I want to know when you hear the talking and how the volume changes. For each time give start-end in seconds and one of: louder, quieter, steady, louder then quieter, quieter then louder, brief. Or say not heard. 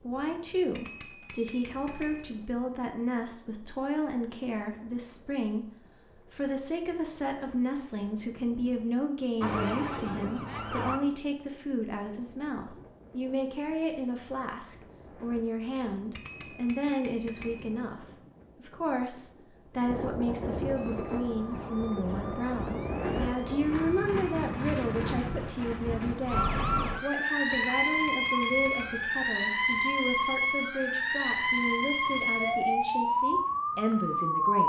0.0-34.6 steady.